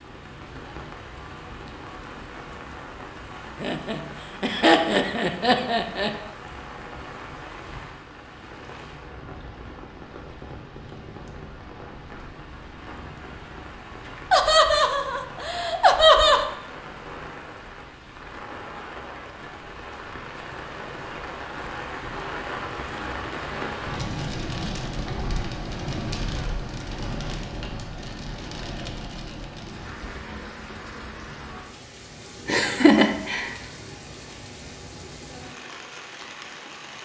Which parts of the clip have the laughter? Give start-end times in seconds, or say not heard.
3.6-6.1, 14.3-16.4, 32.5-33.5.